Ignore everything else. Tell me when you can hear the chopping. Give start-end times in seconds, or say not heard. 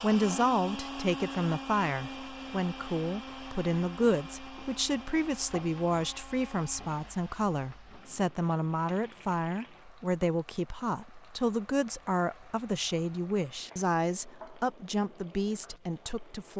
not heard.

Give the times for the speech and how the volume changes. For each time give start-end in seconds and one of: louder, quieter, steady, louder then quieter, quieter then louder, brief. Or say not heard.
0.0-16.5 steady.